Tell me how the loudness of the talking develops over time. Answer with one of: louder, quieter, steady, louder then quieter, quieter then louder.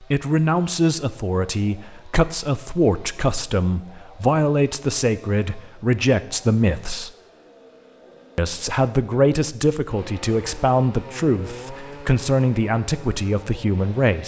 steady.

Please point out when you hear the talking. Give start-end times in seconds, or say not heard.
0.0-7.1, 8.3-14.2.